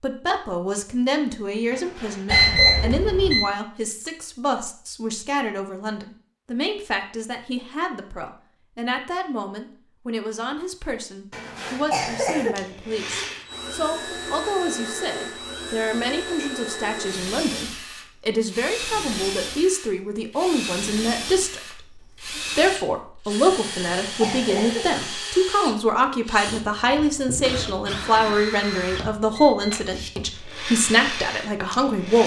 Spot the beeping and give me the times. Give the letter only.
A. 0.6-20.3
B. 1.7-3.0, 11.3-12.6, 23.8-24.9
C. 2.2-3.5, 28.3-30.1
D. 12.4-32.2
C.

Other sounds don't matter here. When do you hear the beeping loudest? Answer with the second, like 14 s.
3 s.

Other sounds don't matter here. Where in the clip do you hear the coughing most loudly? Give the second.
12 s.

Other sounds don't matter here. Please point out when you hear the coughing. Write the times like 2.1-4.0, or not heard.
1.7-3.0, 11.3-12.6, 23.8-24.9.